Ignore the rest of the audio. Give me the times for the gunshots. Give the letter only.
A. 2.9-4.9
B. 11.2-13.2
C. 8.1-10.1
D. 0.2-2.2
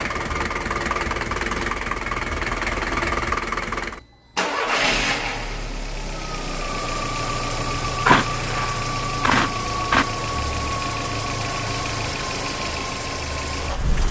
C.